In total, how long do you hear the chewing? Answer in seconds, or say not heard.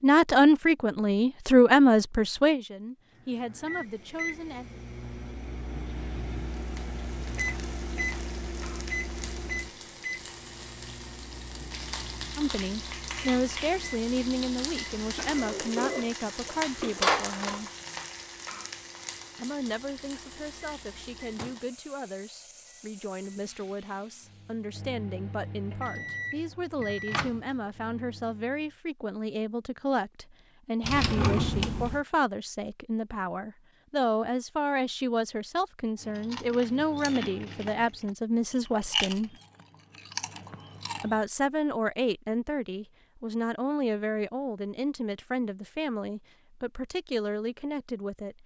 5 s.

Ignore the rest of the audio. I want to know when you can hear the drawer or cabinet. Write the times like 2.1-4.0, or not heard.
15.2-17.7, 30.8-32.0.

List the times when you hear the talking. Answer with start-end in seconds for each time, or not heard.
0.0-4.7, 12.3-17.7, 19.4-39.4, 41.0-48.4.